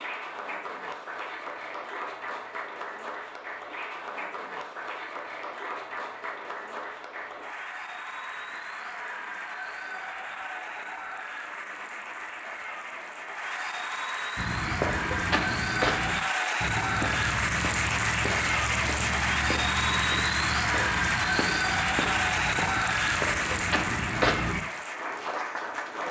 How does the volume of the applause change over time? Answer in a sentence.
The volume of the applause goes up.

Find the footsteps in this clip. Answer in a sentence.
You can hear the footsteps from 14.3 to 24.6 s.